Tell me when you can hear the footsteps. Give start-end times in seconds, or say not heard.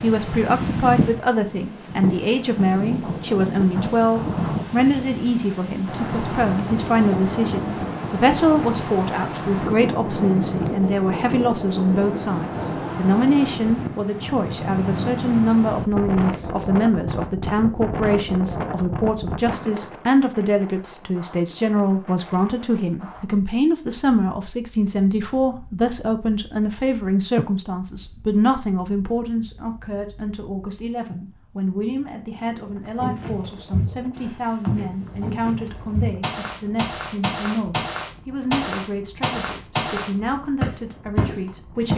33.0-41.9.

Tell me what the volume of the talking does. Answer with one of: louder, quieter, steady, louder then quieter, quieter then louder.
quieter.